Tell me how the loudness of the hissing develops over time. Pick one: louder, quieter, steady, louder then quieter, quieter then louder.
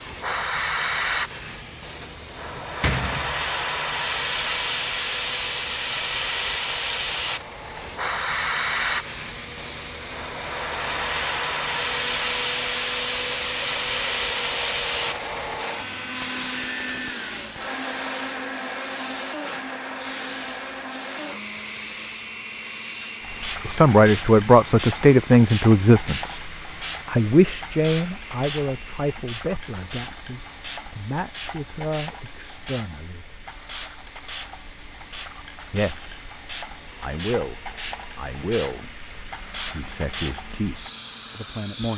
quieter.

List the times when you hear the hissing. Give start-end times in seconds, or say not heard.
0.0-41.9.